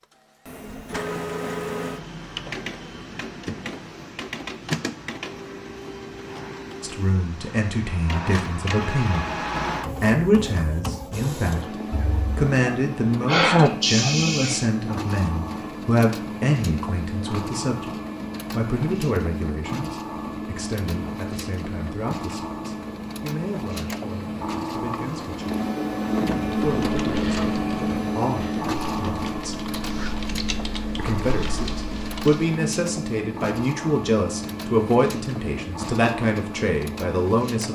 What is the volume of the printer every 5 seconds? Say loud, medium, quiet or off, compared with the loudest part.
medium, medium, medium, medium, medium, loud, medium, medium.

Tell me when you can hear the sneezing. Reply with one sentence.
The sneezing can be heard from 11.9 to 14.7 s.